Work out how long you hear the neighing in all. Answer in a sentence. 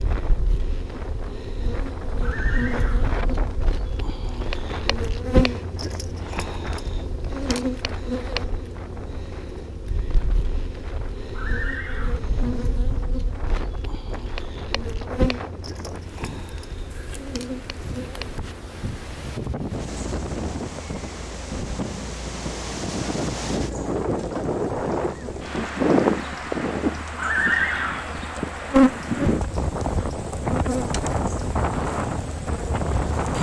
The neighing can be heard for 3 seconds in total.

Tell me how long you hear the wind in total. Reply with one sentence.
The wind can be heard for 33 seconds in total.